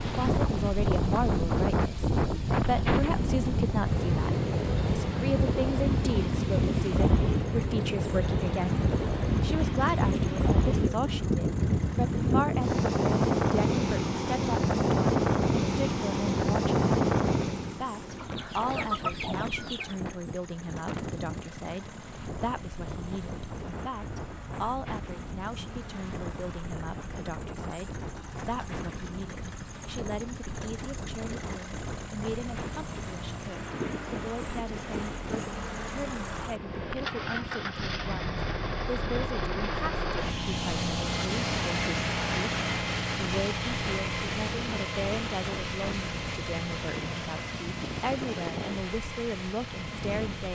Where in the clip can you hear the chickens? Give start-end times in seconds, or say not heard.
18.1-19.9.